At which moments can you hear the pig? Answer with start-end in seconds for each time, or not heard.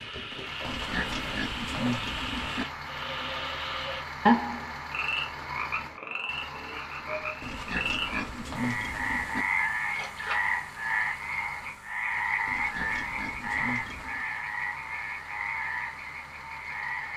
0.6-2.6, 7.4-9.4, 12.4-14.2.